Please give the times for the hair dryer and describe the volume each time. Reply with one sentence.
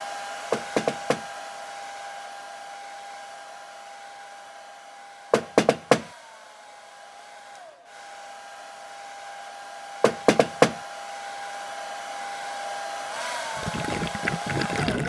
The hair dryer can be heard from 0.0 to 15.0 s, getting quieter then louder.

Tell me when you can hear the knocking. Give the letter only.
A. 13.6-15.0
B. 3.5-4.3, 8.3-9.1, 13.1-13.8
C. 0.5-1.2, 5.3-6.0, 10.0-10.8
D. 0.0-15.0
C.